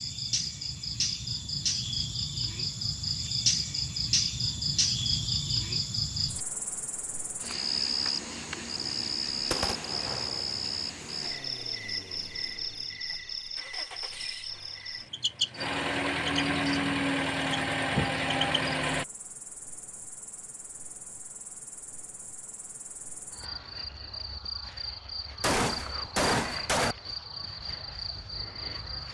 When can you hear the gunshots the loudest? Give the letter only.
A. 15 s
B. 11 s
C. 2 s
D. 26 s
D.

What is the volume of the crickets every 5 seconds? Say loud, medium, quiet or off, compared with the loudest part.
loud, loud, medium, medium, quiet, medium.